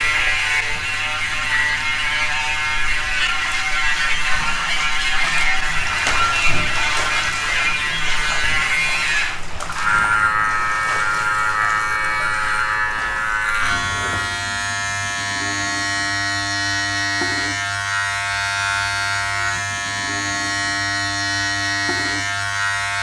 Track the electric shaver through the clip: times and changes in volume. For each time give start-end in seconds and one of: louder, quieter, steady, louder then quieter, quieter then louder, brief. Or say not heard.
0.0-22.9 steady.